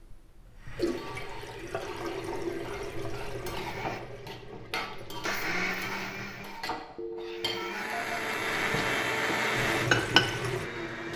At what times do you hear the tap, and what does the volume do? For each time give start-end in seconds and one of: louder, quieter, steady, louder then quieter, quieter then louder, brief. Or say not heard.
0.0-6.5 quieter
9.5-11.1 brief.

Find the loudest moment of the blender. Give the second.
9 s.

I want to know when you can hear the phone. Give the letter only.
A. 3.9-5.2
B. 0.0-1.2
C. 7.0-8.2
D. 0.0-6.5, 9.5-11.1
C.